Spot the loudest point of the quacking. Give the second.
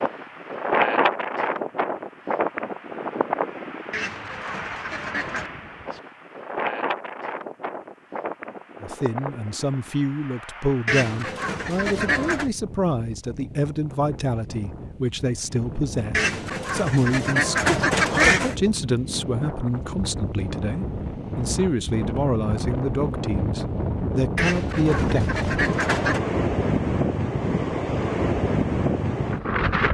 18 s.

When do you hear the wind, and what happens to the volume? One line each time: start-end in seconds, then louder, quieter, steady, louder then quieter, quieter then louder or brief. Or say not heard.
0.0-29.8 quieter then louder.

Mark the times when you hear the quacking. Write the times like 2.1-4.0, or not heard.
3.9-5.5, 10.8-12.5, 16.1-18.6, 24.4-26.2.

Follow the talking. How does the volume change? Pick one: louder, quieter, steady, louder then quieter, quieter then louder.
steady.